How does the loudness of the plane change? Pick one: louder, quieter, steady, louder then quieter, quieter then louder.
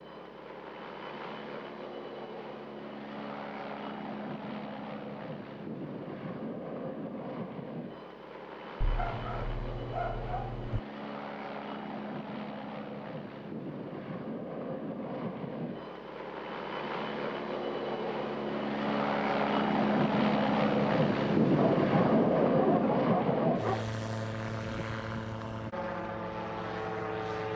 louder.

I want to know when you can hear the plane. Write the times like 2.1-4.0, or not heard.
0.0-27.5.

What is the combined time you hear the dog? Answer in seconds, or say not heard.
4 s.